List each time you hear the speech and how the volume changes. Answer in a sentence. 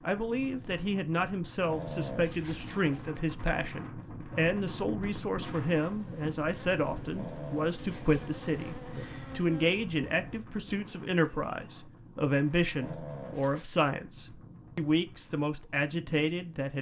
The speech can be heard from 0.0 to 16.7 s, at a steady volume.